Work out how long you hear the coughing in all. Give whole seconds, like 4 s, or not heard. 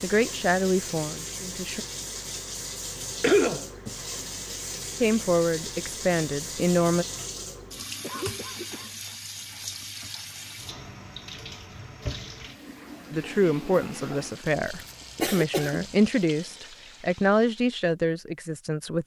2 s.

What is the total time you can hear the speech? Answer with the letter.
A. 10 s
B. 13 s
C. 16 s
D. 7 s
A.